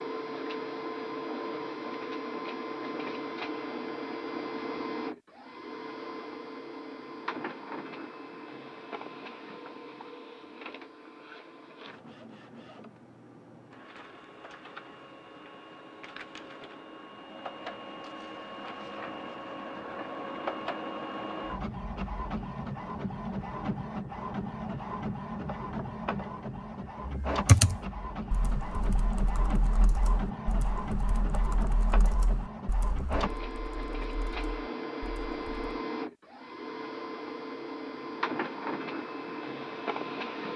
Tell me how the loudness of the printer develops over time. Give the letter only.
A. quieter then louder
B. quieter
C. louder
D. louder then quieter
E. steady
A.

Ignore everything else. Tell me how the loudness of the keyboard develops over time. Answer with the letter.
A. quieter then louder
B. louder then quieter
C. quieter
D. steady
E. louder
C.